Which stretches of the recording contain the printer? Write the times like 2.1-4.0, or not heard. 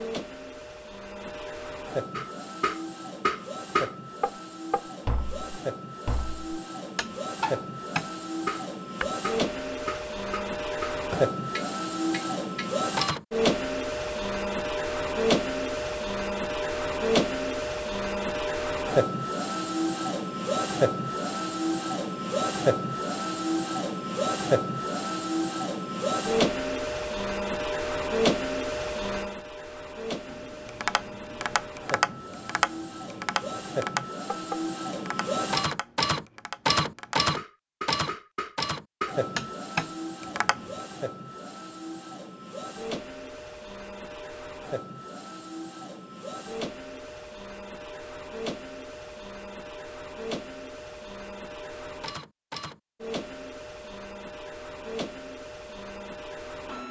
0.0-56.8.